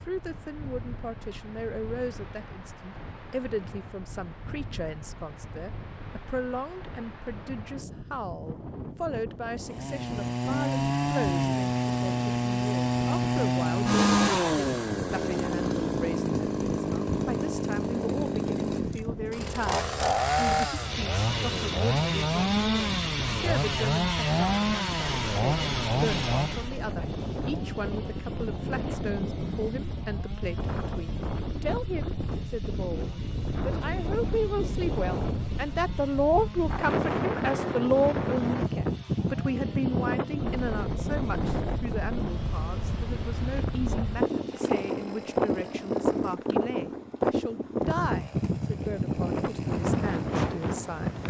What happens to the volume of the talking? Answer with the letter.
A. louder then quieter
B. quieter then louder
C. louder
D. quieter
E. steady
A.